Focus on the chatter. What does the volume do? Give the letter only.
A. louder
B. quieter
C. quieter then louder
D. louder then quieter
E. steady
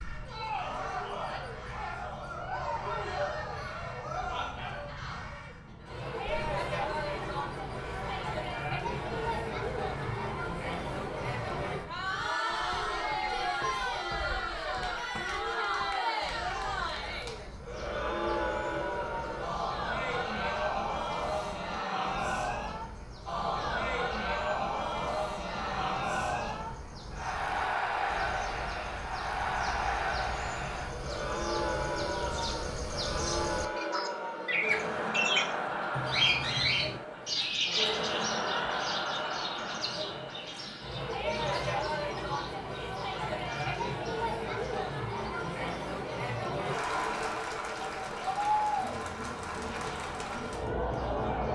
E.